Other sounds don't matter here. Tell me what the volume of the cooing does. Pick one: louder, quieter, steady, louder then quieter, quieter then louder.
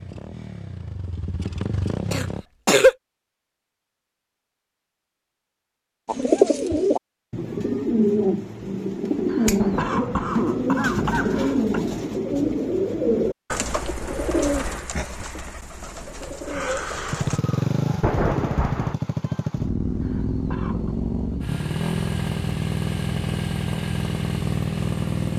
quieter.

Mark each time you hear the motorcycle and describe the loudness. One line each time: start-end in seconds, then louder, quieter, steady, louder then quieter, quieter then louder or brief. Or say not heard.
0.0-2.5 brief
17.1-25.3 steady.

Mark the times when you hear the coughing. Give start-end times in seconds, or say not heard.
2.1-3.0, 9.3-11.8, 20.0-20.9.